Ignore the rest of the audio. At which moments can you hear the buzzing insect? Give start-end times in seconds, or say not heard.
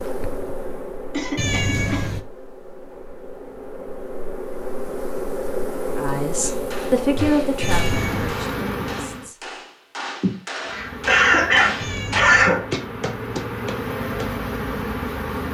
0.0-9.3, 10.7-15.4.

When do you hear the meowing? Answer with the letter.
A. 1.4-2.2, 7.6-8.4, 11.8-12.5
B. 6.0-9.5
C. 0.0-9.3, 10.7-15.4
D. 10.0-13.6
A.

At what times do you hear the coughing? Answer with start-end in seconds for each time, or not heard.
1.1-2.0, 10.2-12.7.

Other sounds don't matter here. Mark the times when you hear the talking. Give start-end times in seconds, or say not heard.
6.0-9.5.